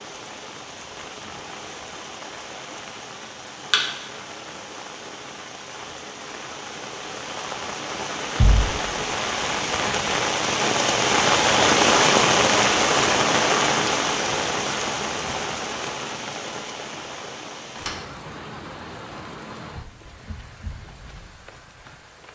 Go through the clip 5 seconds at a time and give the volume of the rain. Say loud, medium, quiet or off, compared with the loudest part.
quiet, medium, loud, quiet, quiet.